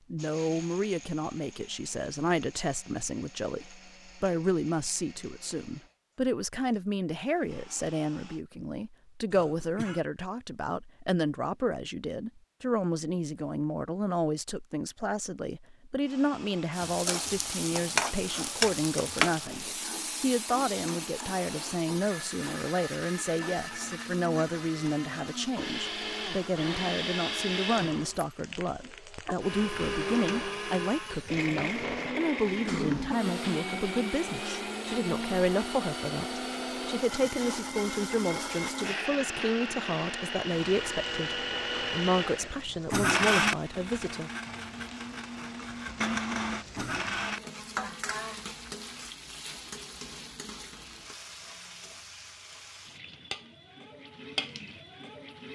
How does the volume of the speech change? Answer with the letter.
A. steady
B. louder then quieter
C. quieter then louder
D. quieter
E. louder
A.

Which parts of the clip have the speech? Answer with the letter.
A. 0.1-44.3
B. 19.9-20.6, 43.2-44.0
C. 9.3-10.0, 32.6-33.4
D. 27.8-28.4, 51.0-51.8
A.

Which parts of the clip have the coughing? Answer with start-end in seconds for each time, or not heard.
9.3-10.0, 32.6-33.4.